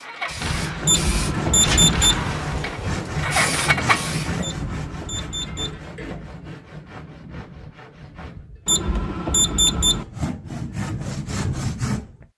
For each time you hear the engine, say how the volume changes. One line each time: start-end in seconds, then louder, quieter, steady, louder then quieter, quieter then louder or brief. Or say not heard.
0.0-4.5 louder.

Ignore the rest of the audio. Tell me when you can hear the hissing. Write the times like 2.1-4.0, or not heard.
0.0-4.3.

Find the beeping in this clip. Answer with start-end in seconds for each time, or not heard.
0.8-2.2, 4.4-5.8, 8.7-10.1.